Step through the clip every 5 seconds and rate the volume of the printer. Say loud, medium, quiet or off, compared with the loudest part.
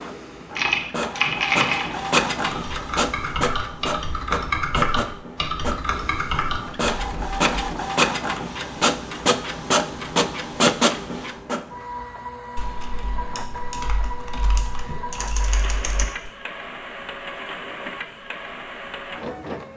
loud, loud, loud, medium.